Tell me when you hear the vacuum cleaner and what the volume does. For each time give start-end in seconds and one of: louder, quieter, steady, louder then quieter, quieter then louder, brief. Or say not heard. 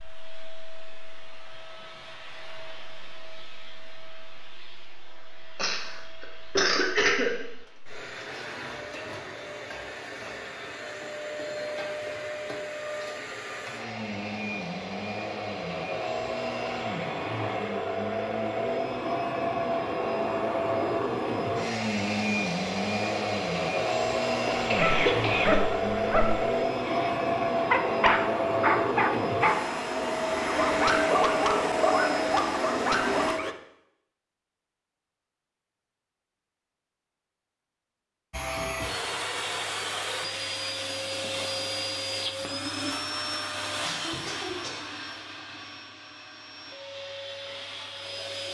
0.0-33.5 louder
38.3-48.4 quieter.